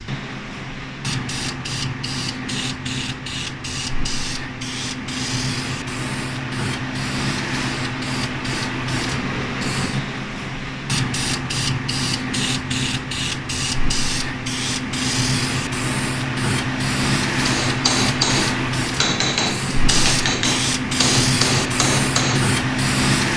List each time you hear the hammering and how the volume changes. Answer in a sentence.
You can hear the hammering from 17.4 to 22.6 s, at a steady volume.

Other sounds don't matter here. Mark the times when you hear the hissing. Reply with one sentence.
You can hear the hissing from 0.0 to 23.3 s.